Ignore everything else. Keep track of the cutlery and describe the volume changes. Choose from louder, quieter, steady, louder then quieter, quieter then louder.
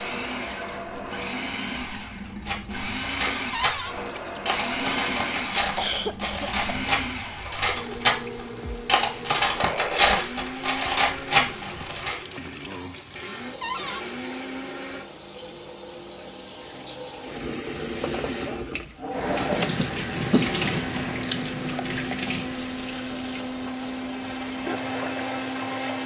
louder.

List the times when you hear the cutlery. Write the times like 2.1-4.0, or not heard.
2.5-12.2.